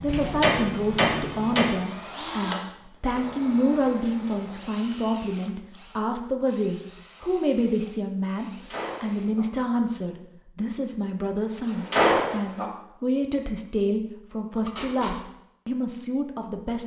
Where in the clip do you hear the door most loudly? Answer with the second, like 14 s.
12 s.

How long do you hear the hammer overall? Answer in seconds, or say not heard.
2 s.